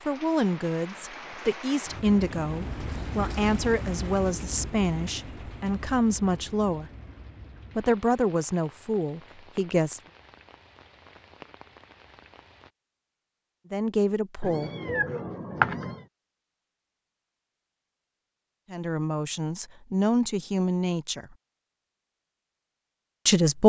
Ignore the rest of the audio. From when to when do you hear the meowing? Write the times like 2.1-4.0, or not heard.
14.4-16.1.